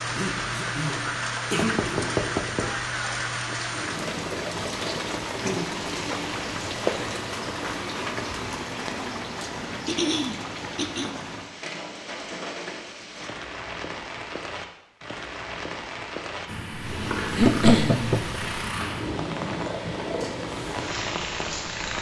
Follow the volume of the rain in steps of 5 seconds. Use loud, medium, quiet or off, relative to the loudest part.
loud, loud, medium, medium, medium.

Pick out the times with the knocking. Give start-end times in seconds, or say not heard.
1.6-2.7, 17.4-18.4.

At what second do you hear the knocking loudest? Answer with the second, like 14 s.
18 s.